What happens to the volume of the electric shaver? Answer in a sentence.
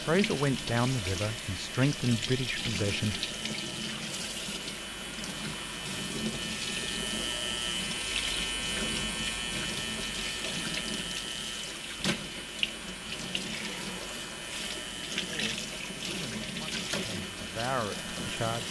The volume of the electric shaver goes up, then down.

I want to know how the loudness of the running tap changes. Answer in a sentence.
The loudness of the running tap stays about the same.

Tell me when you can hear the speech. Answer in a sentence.
You can hear the speech from 0.1 to 3.2 s and from 15.2 to 18.6 s.